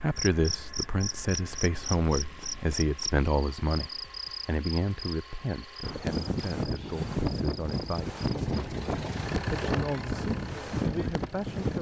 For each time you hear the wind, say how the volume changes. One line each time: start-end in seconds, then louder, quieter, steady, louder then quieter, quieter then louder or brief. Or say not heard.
5.8-11.7 steady.